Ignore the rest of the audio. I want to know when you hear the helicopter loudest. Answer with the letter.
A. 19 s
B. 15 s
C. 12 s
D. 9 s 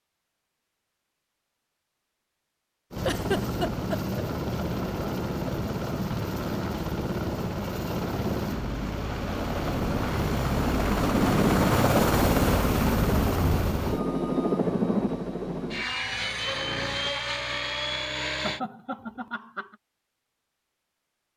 C.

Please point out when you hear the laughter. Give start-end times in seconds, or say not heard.
3.0-4.0, 18.4-19.8.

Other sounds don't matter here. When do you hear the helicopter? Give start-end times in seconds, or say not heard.
2.9-18.6.